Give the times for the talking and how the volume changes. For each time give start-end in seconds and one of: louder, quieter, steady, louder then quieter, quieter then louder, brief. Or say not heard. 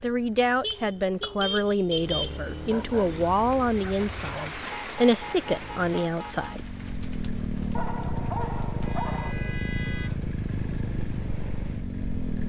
0.0-6.7 steady.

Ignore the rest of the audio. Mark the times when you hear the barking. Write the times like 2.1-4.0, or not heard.
2.7-4.7, 7.8-9.3.